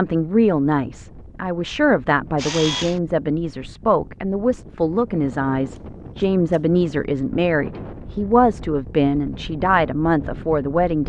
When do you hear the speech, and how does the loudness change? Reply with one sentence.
The speech can be heard from 0.0 to 11.0 s, at a steady volume.